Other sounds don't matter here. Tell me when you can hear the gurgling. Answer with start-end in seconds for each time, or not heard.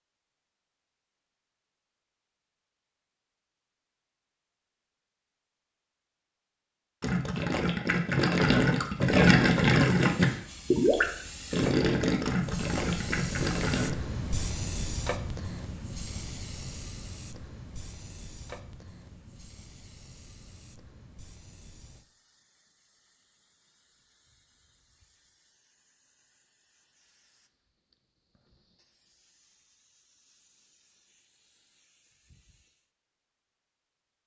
7.0-13.9.